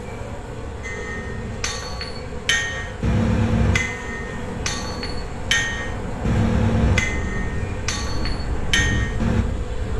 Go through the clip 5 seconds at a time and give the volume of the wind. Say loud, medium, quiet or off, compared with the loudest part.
medium, loud.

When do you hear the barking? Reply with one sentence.
The barking can't be heard in this clip.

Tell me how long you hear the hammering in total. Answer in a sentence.
The hammering can be heard for 9 seconds in total.